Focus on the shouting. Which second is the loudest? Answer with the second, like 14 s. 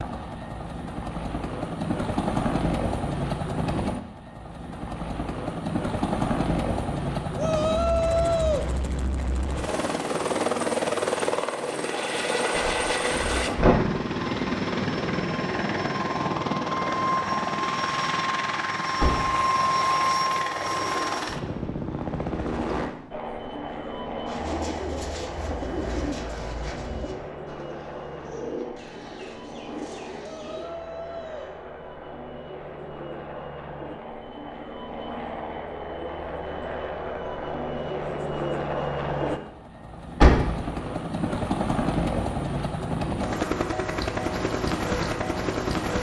8 s.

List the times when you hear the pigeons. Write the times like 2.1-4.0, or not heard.
24.2-30.7.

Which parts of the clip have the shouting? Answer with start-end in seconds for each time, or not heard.
7.3-8.7, 30.2-31.6.